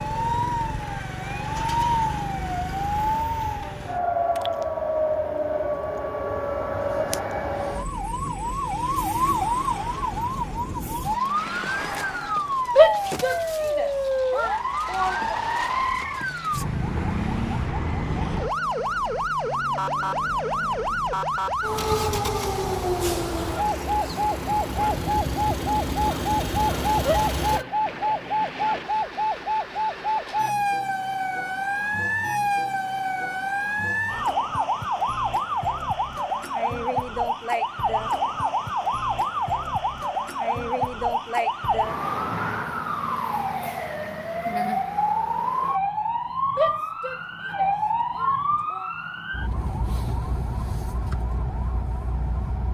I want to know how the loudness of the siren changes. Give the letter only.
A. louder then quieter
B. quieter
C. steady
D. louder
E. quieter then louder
C.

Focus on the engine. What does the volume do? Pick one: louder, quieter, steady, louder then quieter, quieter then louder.
louder.